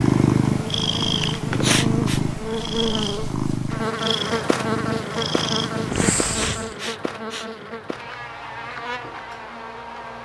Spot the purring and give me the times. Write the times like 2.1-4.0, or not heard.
0.0-6.8.